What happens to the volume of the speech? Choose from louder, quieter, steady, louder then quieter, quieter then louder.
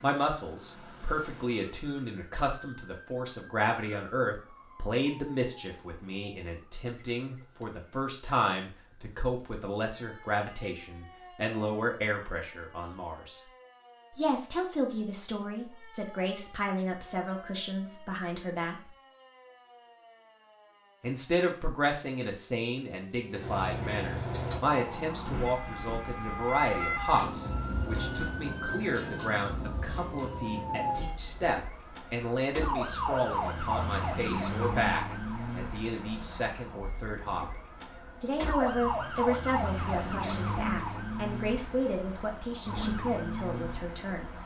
steady.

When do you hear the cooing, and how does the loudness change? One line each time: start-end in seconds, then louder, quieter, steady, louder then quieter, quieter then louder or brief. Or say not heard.
not heard.